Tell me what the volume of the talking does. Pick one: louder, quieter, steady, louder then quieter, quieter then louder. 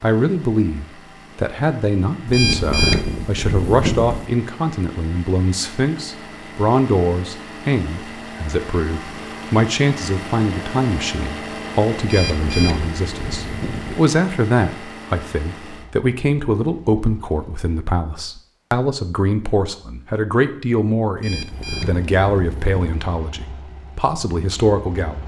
steady.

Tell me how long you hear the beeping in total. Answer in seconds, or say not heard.
6 s.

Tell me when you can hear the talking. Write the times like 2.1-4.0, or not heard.
0.0-25.2.